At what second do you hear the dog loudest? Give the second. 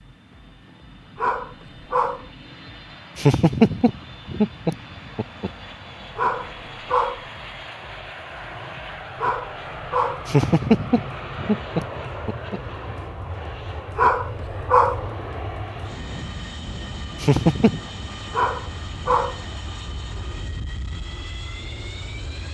15 s.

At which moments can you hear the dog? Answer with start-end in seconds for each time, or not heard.
1.1-2.2, 6.2-7.2, 9.2-10.3, 13.9-15.1, 18.3-19.4.